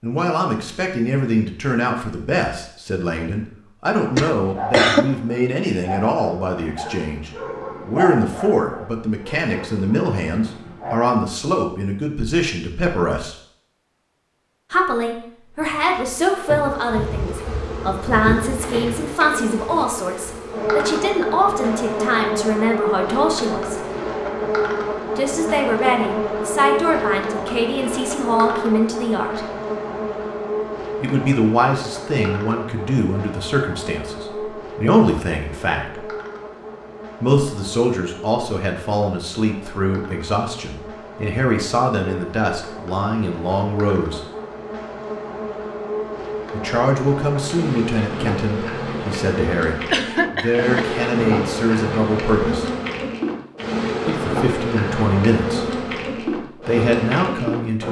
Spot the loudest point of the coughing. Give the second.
5 s.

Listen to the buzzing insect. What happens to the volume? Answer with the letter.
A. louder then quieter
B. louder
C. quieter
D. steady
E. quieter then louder
E.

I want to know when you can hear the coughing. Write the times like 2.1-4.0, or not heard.
4.2-5.0, 49.9-51.0.